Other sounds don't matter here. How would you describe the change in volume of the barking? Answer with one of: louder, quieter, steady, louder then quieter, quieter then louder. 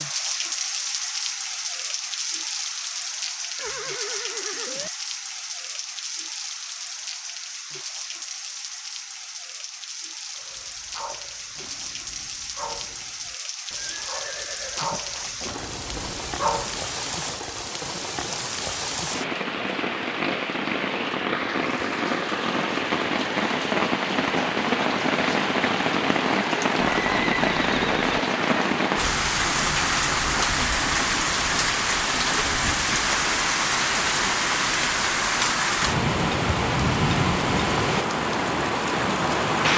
louder.